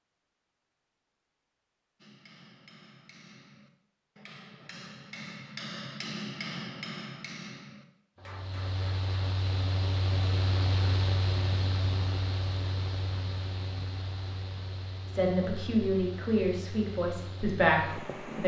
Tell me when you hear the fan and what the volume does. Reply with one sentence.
You can hear the fan from 8.2 to 18.4 s, getting quieter.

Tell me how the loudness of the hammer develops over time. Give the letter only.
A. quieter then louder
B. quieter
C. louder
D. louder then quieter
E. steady
D.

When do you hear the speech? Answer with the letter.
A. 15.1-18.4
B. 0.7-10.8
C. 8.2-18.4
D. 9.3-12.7
A.